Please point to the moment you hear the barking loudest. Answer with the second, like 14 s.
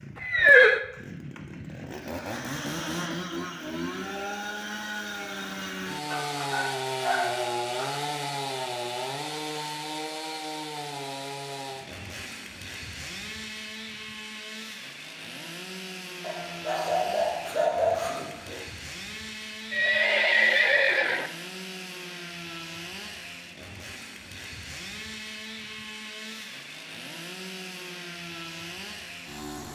18 s.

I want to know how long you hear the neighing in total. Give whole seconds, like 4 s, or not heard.
2 s.